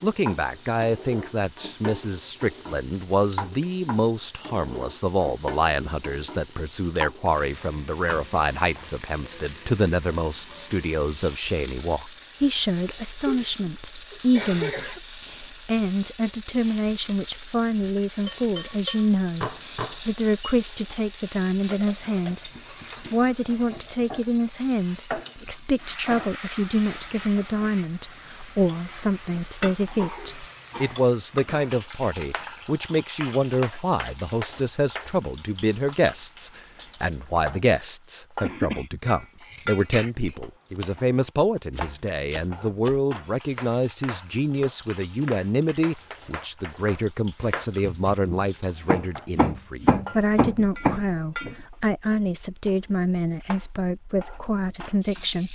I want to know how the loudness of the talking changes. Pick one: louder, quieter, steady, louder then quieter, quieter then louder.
steady.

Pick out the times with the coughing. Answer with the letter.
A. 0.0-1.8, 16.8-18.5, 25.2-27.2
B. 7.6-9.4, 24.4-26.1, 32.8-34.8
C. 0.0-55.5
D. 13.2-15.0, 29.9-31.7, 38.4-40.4
D.